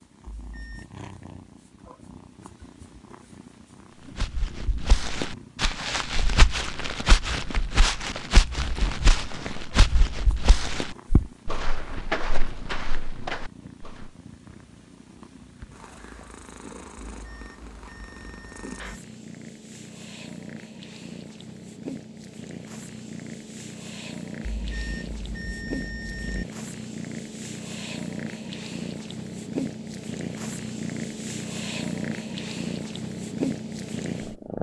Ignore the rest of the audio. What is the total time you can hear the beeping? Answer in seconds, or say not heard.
4 s.